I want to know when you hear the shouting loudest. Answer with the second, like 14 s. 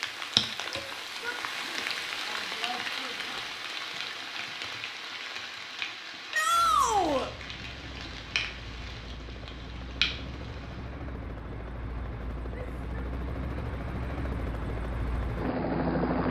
7 s.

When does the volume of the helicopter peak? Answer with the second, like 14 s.
16 s.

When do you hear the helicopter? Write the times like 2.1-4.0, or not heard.
6.5-16.2.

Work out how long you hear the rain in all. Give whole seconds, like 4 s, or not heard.
11 s.